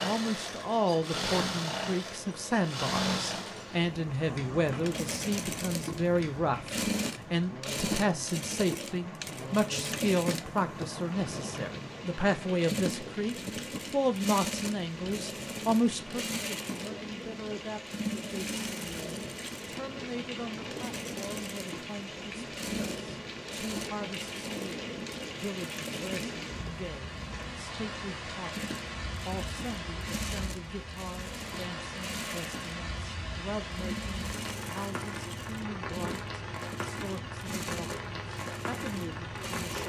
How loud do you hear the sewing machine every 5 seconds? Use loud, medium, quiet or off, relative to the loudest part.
loud, loud, loud, loud, medium, medium, medium, medium.